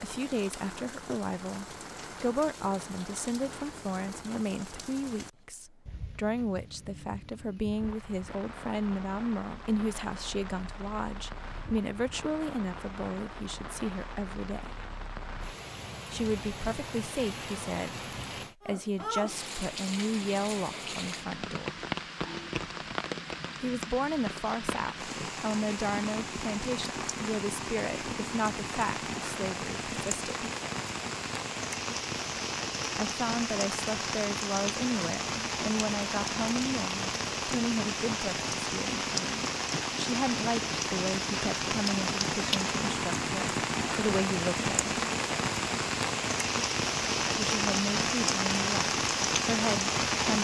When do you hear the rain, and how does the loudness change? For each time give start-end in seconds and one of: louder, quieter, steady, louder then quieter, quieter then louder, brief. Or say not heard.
0.0-50.4 louder.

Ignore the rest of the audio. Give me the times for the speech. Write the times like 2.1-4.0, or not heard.
0.0-14.8, 16.1-18.0, 18.6-21.8, 23.6-30.5, 33.0-45.0, 47.4-50.4.